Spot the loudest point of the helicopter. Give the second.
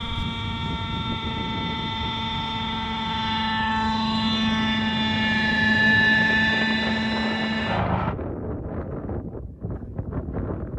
6 s.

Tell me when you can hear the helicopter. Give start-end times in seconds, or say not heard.
0.0-8.2.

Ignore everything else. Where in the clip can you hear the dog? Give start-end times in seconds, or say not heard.
not heard.